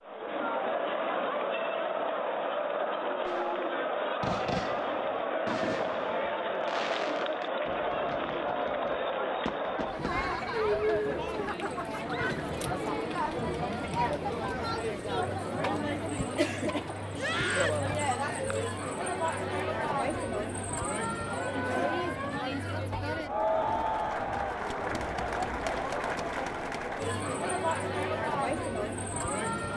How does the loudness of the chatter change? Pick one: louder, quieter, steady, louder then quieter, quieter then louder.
steady.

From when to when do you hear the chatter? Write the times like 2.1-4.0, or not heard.
0.0-29.7.